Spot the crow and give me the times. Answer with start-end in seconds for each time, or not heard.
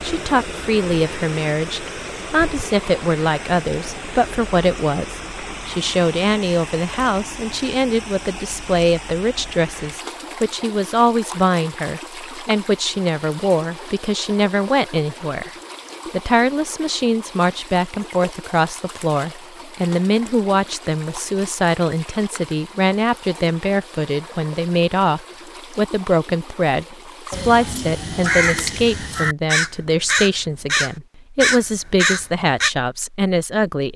27.3-32.7.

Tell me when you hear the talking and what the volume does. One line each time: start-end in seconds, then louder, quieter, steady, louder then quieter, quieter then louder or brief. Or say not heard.
0.0-15.5 steady
16.1-33.9 steady.